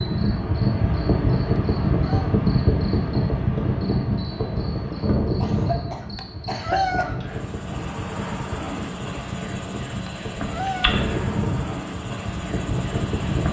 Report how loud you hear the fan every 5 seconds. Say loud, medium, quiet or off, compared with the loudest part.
loud, medium, medium.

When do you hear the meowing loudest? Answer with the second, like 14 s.
7 s.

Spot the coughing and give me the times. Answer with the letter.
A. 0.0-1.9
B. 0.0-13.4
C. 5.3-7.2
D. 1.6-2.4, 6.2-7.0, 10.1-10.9
C.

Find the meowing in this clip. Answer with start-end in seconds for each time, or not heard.
1.6-2.4, 6.2-7.0, 10.1-10.9.